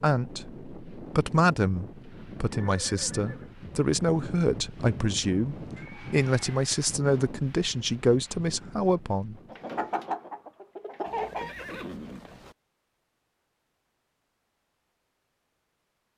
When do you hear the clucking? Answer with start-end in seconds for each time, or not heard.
9.5-11.6.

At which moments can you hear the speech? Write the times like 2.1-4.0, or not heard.
0.0-9.3.